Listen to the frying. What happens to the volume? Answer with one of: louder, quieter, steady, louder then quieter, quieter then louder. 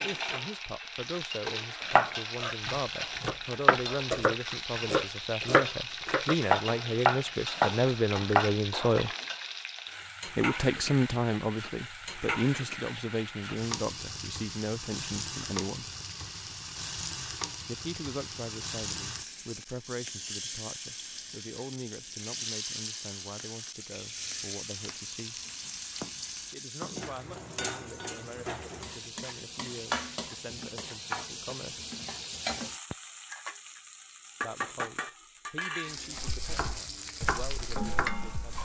steady.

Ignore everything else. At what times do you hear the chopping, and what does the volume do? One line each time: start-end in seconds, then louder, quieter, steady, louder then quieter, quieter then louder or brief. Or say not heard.
1.8-8.9 louder
36.2-38.6 brief.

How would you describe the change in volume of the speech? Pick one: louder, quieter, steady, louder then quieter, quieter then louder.
louder then quieter.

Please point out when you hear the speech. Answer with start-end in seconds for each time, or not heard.
0.0-9.1, 10.3-15.9, 17.6-25.4, 26.5-31.9, 34.4-38.6.